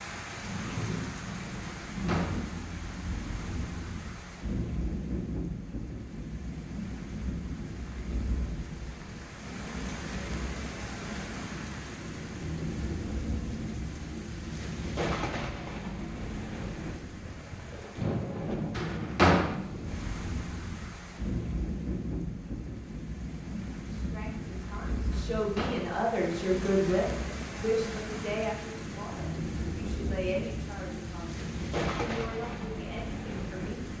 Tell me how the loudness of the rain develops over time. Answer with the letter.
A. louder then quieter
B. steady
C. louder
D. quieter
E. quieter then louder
B.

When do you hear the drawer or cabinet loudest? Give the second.
19 s.